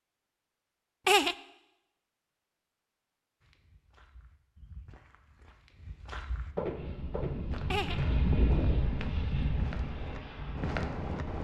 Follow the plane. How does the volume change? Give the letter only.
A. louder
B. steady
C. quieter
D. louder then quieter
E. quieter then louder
D.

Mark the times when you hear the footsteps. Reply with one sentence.
You can hear the footsteps from 3.4 to 11.3 s.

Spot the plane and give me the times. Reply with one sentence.
The plane can be heard from 6.5 to 11.3 s.